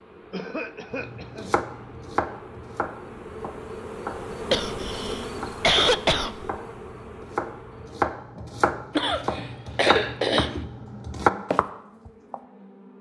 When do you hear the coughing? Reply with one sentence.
You can hear the coughing from 0.3 to 1.6 s, from 4.5 to 6.5 s and from 8.9 to 10.6 s.